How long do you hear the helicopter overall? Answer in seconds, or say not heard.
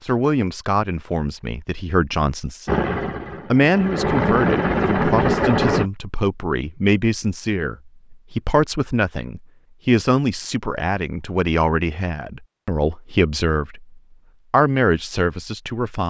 3 s.